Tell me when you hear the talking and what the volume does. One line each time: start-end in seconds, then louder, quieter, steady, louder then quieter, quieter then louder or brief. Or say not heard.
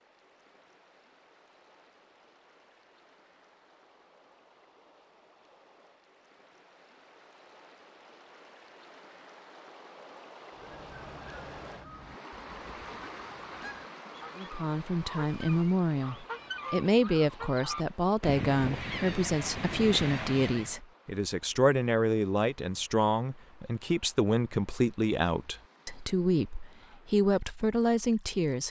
14.3-28.6 steady.